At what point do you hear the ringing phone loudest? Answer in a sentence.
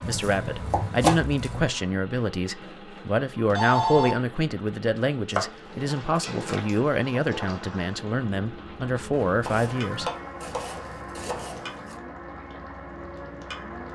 The loudest moment of the ringing phone is at 4 seconds.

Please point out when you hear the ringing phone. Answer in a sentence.
The ringing phone can be heard from 2.6 to 4.2 s and from 9.1 to 10.1 s.